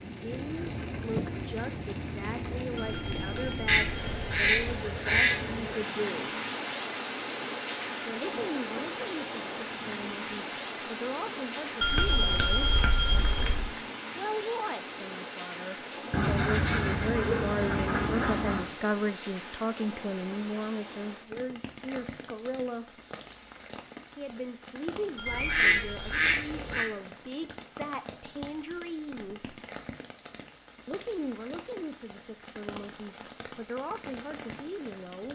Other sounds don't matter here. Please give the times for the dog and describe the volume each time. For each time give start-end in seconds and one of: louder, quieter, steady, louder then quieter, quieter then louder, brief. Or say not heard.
not heard.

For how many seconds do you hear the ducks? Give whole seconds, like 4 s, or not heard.
6 s.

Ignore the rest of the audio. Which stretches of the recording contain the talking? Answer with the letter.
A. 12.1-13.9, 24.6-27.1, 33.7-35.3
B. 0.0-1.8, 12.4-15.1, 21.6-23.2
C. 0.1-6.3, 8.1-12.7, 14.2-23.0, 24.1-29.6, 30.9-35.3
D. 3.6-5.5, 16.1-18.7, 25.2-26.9
C.